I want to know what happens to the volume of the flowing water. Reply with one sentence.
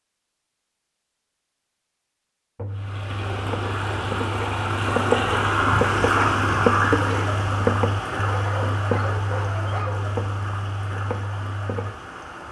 The loudness of the flowing water goes up, then down.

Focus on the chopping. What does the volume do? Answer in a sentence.
The loudness of the chopping goes up, then down.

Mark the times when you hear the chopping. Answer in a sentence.
The chopping can be heard from 2.5 to 11.9 s.